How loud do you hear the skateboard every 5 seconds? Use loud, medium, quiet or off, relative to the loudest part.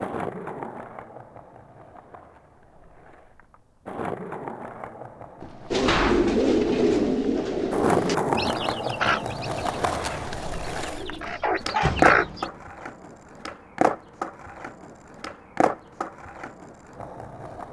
medium, loud, loud, medium.